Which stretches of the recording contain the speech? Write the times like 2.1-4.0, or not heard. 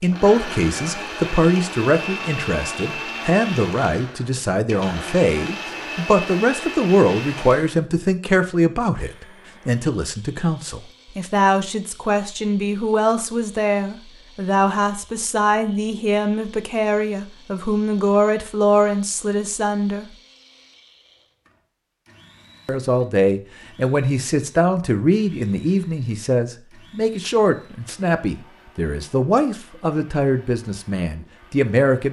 0.0-20.1, 22.6-32.0.